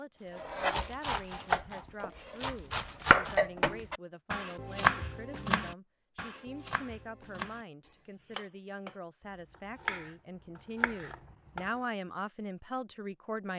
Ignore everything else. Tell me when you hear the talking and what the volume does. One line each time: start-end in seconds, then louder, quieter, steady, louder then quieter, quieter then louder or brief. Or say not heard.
0.0-13.5 louder.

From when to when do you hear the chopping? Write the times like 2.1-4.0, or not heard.
0.3-11.7.